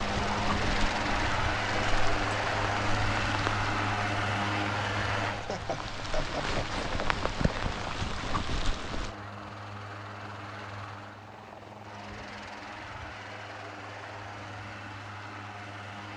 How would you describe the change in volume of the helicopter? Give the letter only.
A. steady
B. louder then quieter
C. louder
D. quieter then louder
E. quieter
E.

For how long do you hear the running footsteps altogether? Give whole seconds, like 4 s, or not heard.
not heard.